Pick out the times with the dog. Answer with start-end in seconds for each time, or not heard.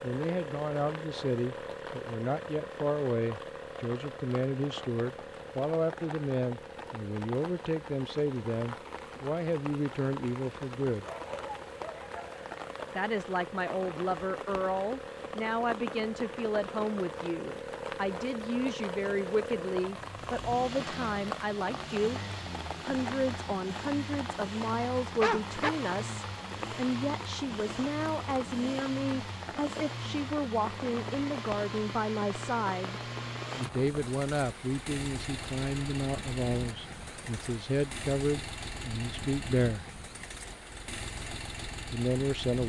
11.1-12.4, 25.2-25.7.